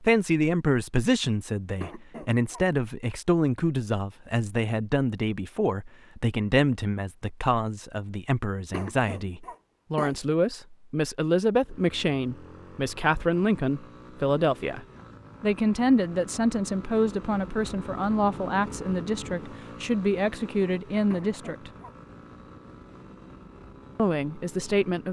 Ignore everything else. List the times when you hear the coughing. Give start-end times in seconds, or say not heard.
1.8-2.6, 8.7-10.2, 21.1-21.9.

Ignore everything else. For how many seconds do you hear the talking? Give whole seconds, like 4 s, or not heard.
23 s.